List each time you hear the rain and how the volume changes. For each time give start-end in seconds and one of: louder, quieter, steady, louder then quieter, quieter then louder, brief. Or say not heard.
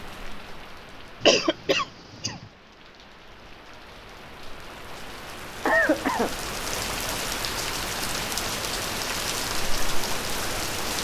0.0-10.9 louder.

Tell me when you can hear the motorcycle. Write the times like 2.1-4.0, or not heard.
not heard.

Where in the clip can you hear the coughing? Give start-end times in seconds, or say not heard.
1.2-2.4, 5.7-6.3.